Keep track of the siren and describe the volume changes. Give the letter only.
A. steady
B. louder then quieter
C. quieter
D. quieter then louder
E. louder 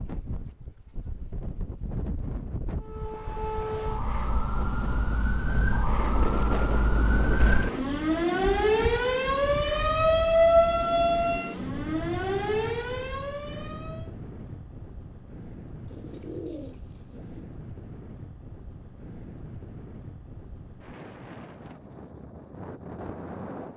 B.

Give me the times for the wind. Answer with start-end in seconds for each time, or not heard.
0.0-23.7.